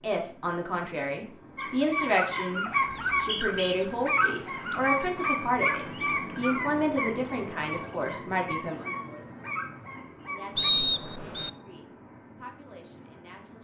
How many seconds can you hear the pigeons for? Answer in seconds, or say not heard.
not heard.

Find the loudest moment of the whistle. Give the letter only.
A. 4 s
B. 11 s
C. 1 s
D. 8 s
B.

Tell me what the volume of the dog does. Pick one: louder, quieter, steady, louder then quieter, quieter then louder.
quieter.